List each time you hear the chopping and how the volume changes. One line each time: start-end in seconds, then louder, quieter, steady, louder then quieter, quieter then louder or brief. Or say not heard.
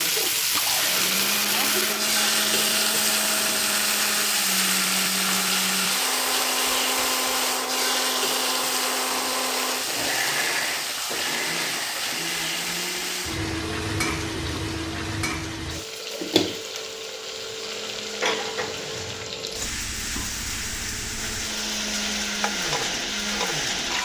not heard.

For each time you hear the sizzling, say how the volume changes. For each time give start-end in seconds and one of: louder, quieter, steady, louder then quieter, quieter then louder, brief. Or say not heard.
0.0-23.9 quieter.